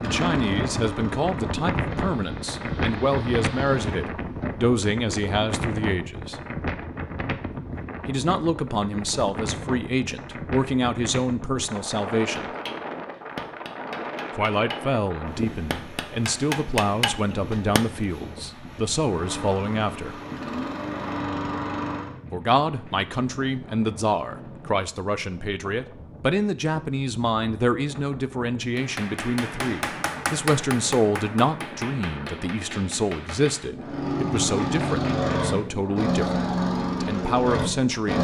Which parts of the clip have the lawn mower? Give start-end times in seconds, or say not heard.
0.0-4.1, 19.1-22.1, 33.8-38.1.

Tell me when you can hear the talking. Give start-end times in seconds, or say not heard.
0.0-6.3, 8.1-12.5, 14.3-20.1, 22.3-38.1.